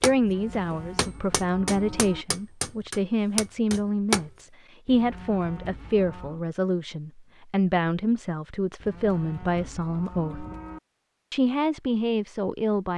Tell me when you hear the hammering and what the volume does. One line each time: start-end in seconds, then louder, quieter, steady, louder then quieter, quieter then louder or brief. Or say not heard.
0.0-4.2 steady.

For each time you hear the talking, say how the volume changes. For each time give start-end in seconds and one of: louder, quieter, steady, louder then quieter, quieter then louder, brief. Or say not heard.
0.0-10.4 steady
11.3-12.9 brief.